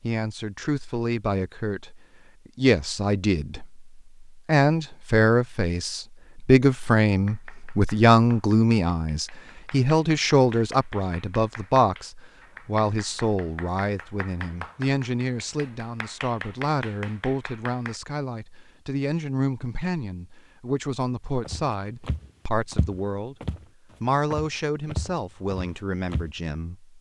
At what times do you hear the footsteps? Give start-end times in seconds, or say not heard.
21.4-23.6, 24.3-26.3.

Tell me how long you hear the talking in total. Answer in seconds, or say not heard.
26 s.